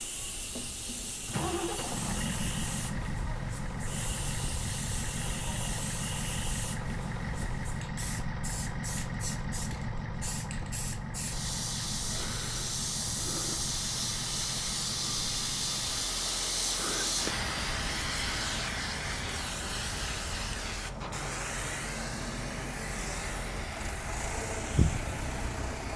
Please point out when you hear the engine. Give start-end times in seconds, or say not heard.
0.1-25.9.